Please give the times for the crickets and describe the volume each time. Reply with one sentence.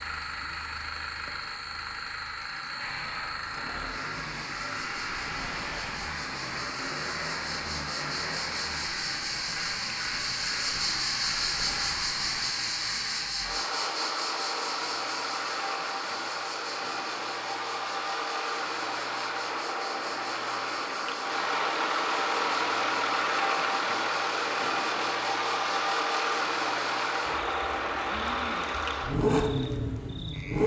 The crickets can be heard from 0.0 to 30.6 s, getting louder then quieter.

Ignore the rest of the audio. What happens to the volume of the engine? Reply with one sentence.
The loudness of the engine goes up.